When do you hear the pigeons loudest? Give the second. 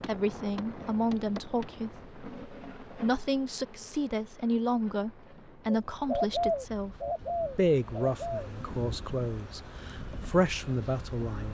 6 s.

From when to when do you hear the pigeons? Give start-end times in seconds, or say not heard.
5.7-8.5.